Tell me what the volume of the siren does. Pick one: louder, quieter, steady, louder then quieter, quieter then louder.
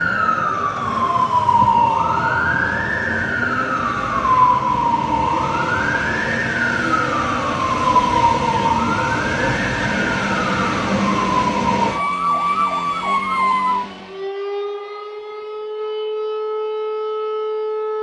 quieter.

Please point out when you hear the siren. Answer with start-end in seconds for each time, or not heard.
0.0-17.9.